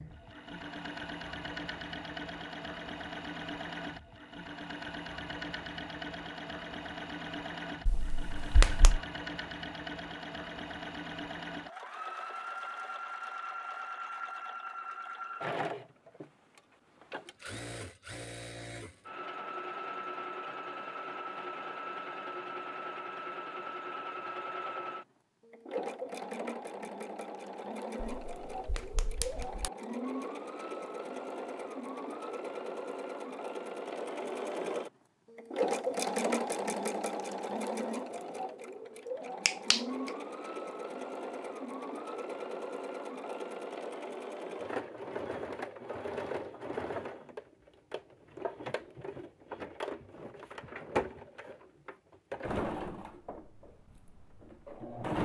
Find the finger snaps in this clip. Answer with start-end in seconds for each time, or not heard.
7.8-9.0, 28.0-29.7, 39.5-40.1.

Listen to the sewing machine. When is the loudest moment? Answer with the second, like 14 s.
36 s.